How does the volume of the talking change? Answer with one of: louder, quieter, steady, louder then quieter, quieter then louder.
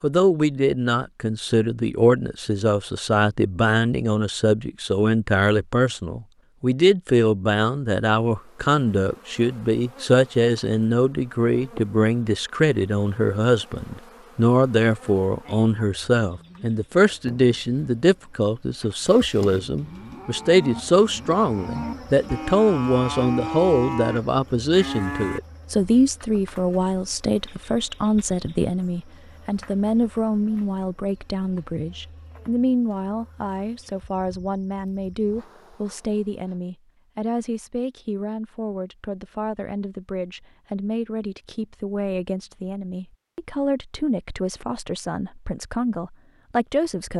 quieter.